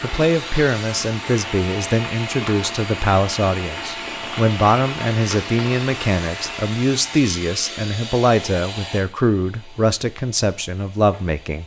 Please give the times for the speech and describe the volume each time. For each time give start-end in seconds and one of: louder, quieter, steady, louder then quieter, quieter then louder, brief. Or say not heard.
0.0-11.6 steady.